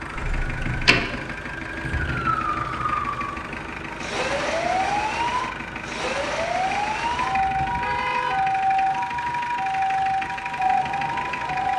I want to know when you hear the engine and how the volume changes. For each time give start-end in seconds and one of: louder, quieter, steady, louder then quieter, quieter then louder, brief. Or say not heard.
0.0-11.7 steady.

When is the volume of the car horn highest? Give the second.
8 s.